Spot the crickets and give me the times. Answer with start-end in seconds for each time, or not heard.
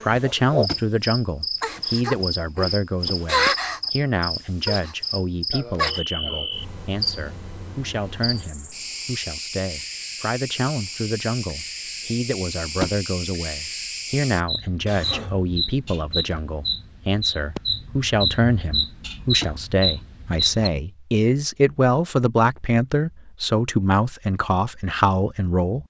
0.0-20.7.